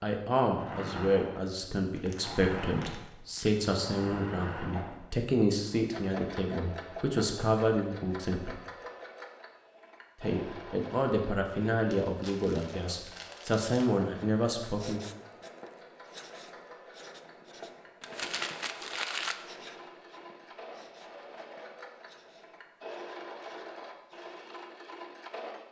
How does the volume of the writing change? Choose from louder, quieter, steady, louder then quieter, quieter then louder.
quieter.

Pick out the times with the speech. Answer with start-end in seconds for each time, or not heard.
0.0-8.6, 10.2-15.0.